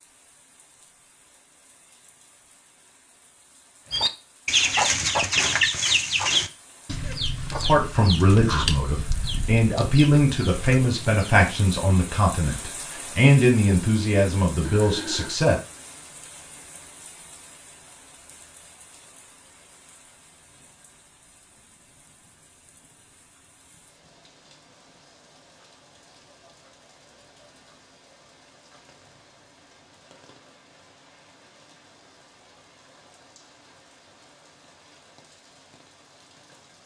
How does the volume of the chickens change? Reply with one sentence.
The loudness of the chickens goes down.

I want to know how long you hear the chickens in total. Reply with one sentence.
You can hear the chickens for 7 seconds altogether.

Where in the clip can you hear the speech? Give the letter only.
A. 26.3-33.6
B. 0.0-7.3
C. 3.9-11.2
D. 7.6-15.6
D.